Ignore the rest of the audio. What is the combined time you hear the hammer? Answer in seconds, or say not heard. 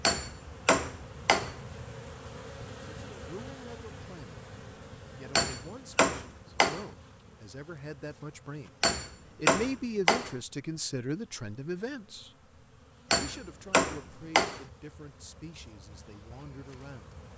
6 s.